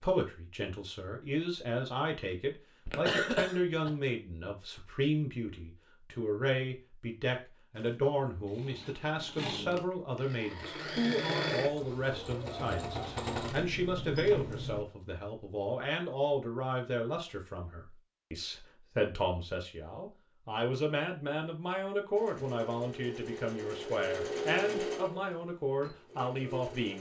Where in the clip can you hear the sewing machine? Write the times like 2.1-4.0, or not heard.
7.7-14.8, 22.1-26.9.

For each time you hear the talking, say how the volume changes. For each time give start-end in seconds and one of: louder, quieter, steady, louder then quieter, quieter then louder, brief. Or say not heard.
0.0-26.9 steady.